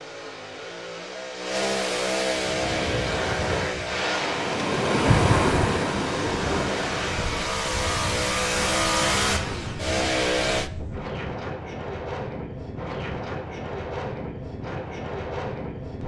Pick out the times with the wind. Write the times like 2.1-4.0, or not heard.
2.4-16.0.